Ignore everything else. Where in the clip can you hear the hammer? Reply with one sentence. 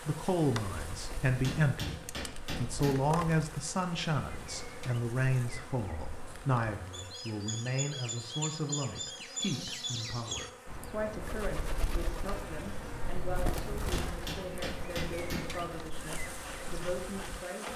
You can hear the hammer from 1.4 to 3.1 s and from 13.9 to 15.6 s.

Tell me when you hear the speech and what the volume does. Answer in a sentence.
The speech can be heard from 0.1 to 17.7 s, getting quieter.